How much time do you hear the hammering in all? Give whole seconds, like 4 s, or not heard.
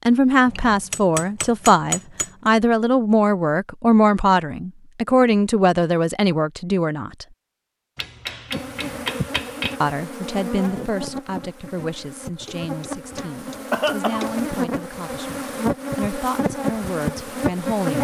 6 s.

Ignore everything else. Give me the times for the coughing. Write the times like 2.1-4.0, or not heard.
13.7-14.3.